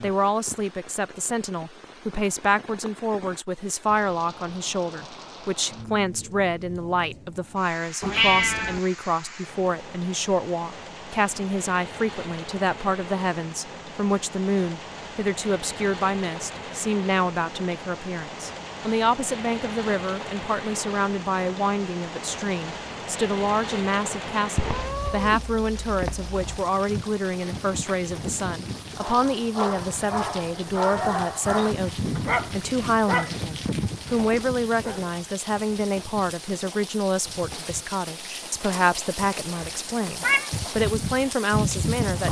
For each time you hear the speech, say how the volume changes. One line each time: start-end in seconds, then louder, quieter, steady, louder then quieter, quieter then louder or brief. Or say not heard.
0.0-42.2 steady.